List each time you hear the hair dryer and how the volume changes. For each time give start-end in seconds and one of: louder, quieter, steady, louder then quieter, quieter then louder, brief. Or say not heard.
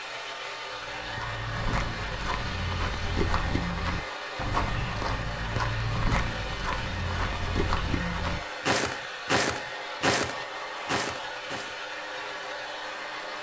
0.0-13.3 steady.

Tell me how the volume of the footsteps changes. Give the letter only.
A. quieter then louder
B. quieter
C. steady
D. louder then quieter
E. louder
E.